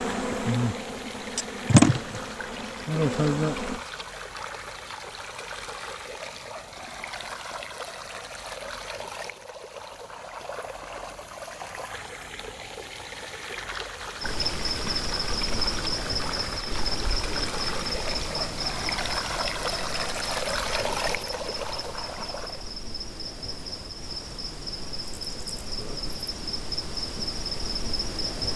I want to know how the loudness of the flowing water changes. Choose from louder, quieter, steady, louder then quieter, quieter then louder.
louder.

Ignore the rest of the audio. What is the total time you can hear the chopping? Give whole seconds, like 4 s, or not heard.
not heard.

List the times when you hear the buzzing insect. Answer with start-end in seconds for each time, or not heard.
0.0-3.8, 14.2-28.5.